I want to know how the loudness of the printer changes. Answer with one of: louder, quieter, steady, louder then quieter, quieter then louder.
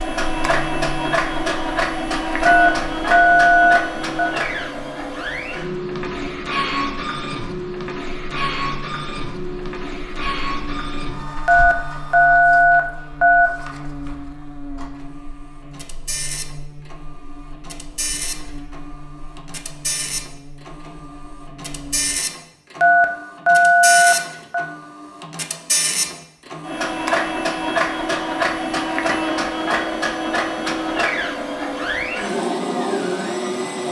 quieter then louder.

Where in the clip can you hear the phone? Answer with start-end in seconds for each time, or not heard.
2.5-4.3, 11.4-13.5, 22.8-24.6.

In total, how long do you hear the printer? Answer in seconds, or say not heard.
34 s.